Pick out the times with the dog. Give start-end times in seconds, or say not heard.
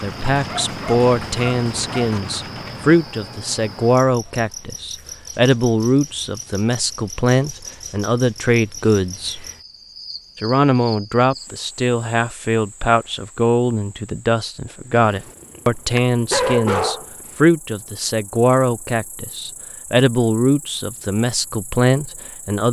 0.3-2.2, 14.9-17.3.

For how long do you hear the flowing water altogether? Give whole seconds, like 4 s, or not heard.
not heard.